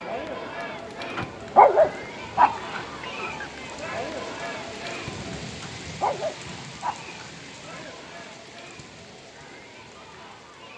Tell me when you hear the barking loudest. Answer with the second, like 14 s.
2 s.